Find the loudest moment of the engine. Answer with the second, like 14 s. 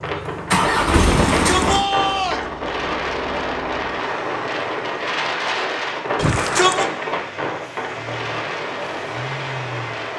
1 s.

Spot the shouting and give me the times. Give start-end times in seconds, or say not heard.
1.3-2.5, 6.2-6.9.